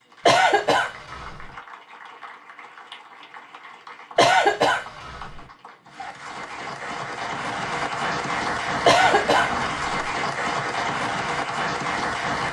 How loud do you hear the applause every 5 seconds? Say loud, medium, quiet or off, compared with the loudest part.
quiet, loud, loud.